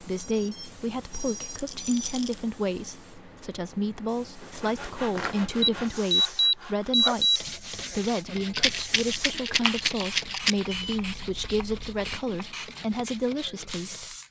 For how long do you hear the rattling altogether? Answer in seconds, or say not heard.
3 s.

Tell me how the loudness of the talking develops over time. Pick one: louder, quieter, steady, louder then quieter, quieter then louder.
steady.